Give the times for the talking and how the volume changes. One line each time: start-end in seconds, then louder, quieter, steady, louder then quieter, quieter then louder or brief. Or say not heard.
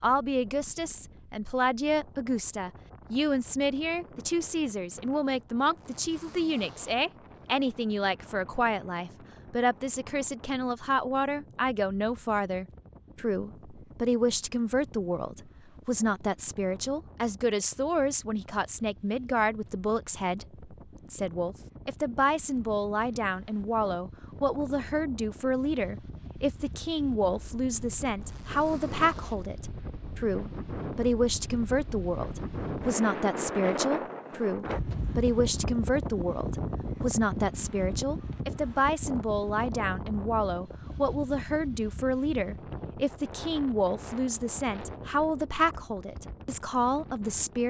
0.0-47.6 steady.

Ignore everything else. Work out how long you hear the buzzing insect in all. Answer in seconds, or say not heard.
not heard.